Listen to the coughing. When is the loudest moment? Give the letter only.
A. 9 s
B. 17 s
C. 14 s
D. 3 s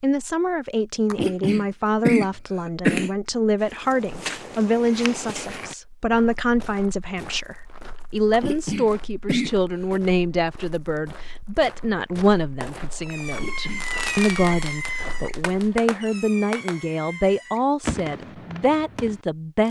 D.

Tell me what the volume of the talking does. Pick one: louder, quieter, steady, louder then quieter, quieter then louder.
steady.